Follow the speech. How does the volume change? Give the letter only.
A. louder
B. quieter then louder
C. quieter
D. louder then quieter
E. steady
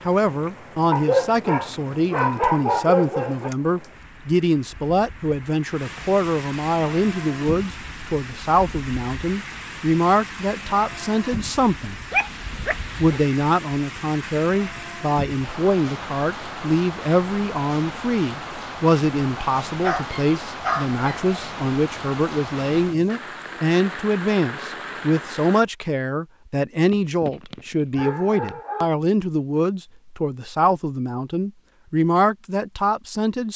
E.